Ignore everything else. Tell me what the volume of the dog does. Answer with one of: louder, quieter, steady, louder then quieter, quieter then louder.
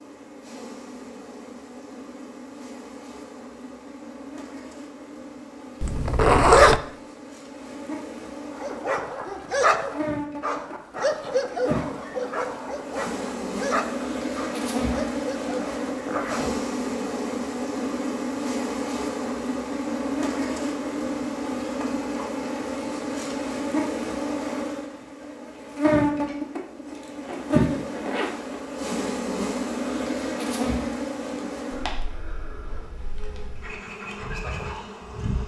quieter.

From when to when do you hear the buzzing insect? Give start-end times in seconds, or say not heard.
0.0-35.4.